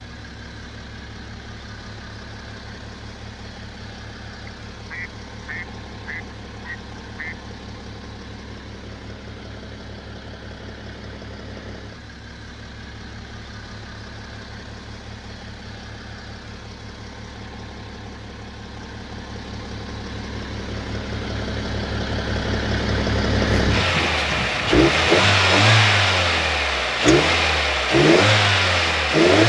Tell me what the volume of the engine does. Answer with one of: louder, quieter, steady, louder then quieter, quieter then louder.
louder.